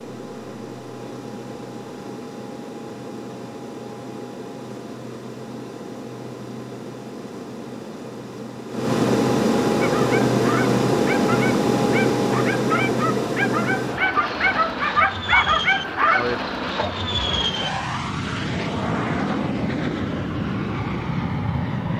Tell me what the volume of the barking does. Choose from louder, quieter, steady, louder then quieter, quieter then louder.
louder.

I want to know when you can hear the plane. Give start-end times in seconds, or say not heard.
0.0-21.9.